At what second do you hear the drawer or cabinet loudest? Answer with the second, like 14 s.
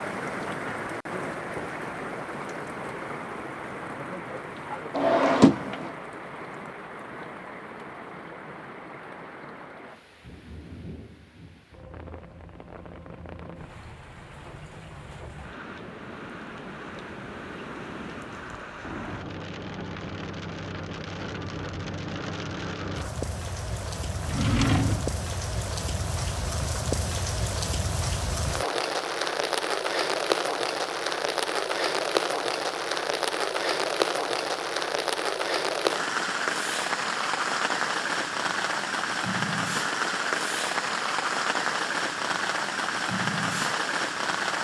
5 s.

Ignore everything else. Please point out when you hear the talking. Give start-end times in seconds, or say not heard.
not heard.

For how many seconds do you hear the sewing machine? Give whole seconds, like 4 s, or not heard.
not heard.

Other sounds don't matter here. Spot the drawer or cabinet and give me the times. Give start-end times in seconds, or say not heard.
5.0-5.9, 24.2-25.1.